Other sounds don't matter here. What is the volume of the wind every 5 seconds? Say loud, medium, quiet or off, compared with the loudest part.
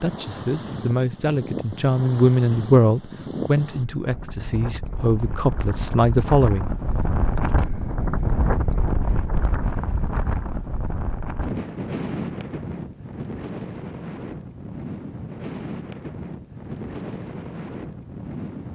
medium, loud, loud, medium.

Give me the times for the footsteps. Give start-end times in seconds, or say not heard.
not heard.